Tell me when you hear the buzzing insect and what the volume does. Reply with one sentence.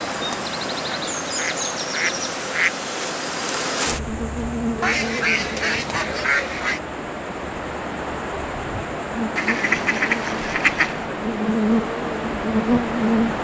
The buzzing insect can be heard from 0.0 to 13.4 s, getting quieter then louder.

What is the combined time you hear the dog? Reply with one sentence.
You can't hear the dog here.